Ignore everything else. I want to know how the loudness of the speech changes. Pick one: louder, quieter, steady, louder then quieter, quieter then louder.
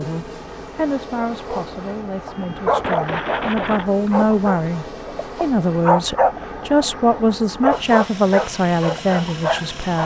louder.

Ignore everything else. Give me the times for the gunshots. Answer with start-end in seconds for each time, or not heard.
2.3-3.9.